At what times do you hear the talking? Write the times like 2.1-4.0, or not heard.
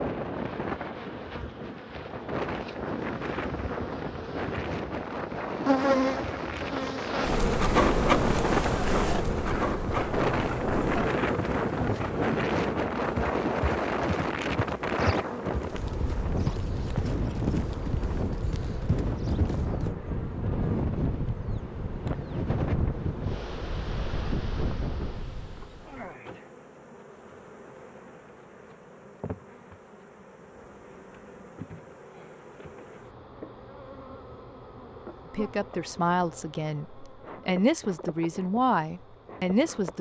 35.3-39.9.